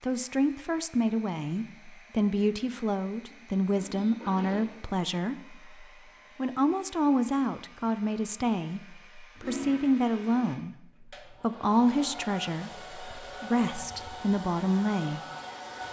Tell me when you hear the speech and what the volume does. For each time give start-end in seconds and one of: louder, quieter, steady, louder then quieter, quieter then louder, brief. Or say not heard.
0.0-15.2 steady.